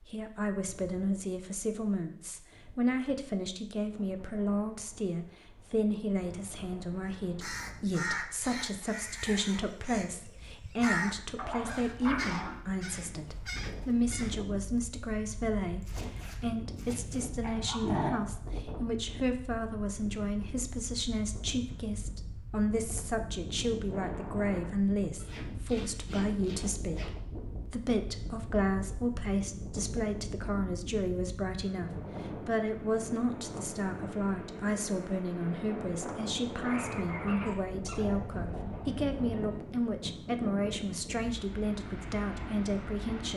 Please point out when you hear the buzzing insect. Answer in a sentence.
The buzzing insect can't be heard in this clip.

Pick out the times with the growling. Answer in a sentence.
The growling can be heard from 11.3 to 12.6 s, from 17.4 to 18.2 s and from 36.8 to 39.6 s.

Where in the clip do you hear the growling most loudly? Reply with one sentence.
The volume of the growling peaks at 18 seconds.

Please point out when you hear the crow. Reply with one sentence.
The crow can be heard from 7.0 to 14.4 s.